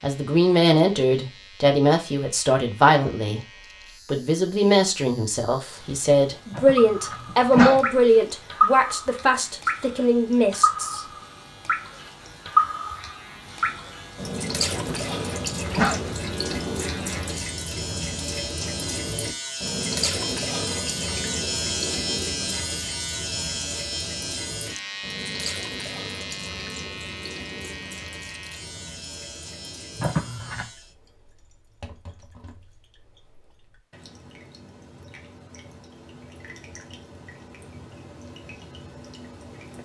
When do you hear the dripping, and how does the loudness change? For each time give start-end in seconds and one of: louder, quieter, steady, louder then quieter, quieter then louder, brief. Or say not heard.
6.8-39.8 quieter.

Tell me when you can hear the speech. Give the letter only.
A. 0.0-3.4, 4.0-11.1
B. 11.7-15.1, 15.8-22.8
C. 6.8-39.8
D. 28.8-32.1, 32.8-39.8
A.